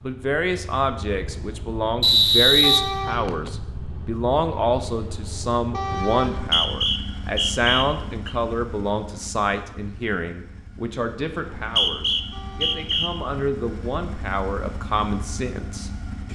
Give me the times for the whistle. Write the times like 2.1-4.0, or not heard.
2.0-3.5, 6.3-8.3, 11.6-13.1.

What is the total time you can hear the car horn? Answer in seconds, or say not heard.
2 s.